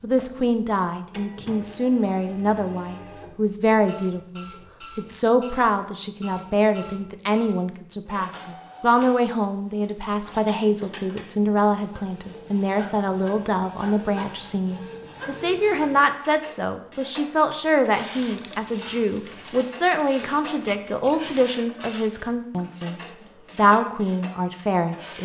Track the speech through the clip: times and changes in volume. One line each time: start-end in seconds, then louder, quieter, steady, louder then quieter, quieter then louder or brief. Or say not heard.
0.0-25.1 steady.